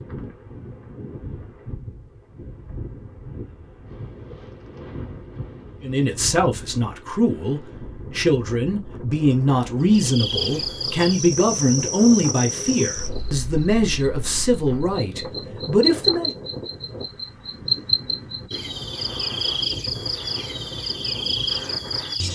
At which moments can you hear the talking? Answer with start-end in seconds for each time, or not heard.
5.8-16.3.